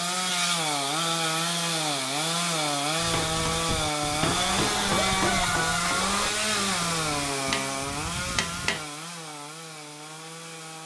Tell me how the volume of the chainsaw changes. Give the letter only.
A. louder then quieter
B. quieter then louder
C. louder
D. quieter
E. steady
D.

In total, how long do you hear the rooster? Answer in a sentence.
The rooster can be heard for 2 seconds in total.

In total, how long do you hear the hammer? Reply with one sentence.
You can hear the hammer for 6 seconds altogether.